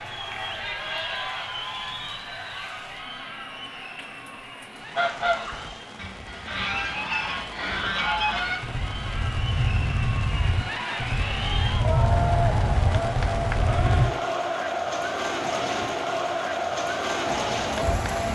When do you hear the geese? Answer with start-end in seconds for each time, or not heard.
5.0-14.1.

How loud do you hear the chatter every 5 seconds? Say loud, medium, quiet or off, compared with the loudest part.
medium, medium, loud, loud.